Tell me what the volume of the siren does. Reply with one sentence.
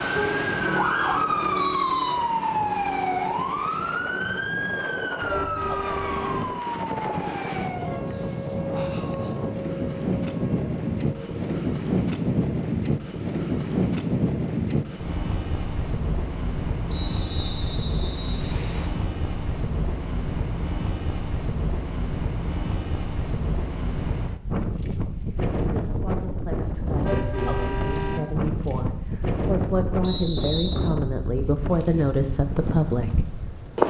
The loudness of the siren goes down.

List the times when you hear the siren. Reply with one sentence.
You can hear the siren from 0.0 to 11.4 s.